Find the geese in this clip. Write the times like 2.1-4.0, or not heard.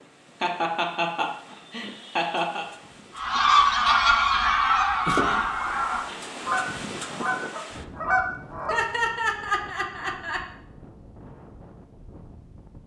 3.1-8.8.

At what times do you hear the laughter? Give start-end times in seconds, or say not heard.
0.4-2.6, 5.0-5.8, 8.7-10.4.